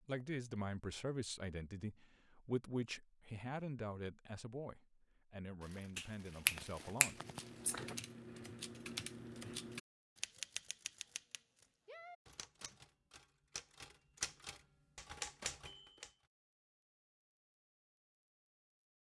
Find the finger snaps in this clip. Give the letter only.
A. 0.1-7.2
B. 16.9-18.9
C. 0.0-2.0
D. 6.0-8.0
D.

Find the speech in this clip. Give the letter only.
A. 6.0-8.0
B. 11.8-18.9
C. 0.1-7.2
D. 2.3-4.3
C.